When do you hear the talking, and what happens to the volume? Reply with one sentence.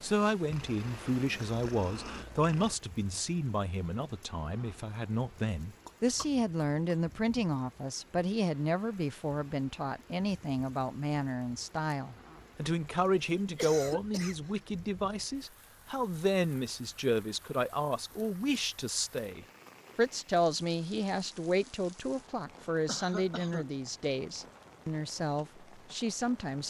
You can hear the talking from 0.0 to 26.6 s, at a steady volume.